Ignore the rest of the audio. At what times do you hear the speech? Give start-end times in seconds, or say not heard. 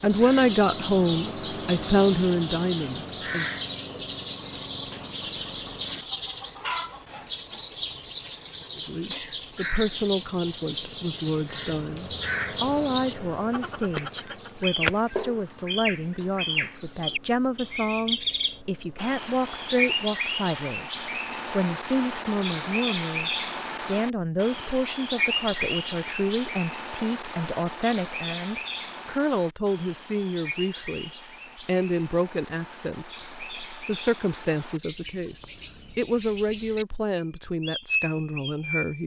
0.0-3.6, 8.8-39.0.